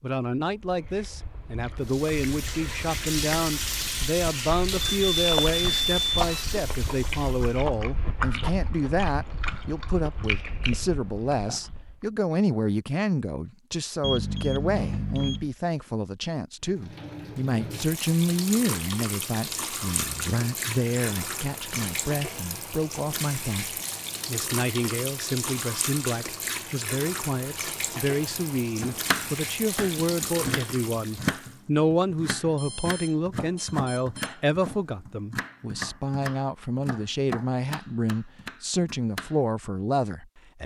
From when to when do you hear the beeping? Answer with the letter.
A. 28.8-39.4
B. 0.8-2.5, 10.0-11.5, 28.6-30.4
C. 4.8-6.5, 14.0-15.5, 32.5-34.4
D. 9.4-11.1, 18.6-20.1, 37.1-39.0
C.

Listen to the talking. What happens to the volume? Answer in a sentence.
The loudness of the talking stays about the same.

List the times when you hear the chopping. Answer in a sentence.
The chopping can be heard from 28.8 to 39.4 s.